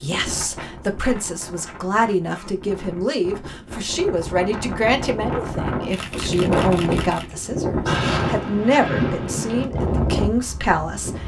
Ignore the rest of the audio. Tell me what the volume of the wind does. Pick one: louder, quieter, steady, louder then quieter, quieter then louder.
louder.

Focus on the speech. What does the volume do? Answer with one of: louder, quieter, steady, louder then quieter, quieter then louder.
steady.